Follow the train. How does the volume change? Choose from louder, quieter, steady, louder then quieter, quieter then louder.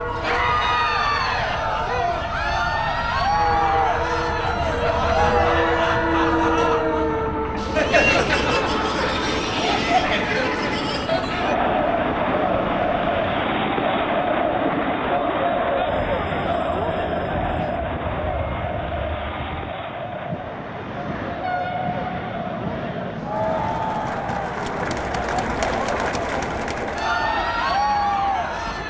quieter.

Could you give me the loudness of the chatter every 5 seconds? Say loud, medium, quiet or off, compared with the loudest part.
loud, loud, loud, loud, medium, loud.